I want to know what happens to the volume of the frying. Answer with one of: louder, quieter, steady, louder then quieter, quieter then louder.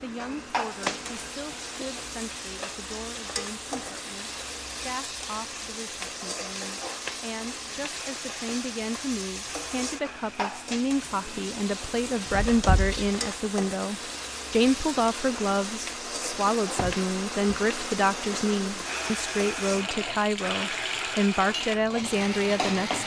steady.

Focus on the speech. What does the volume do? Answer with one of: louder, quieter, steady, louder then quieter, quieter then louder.
louder.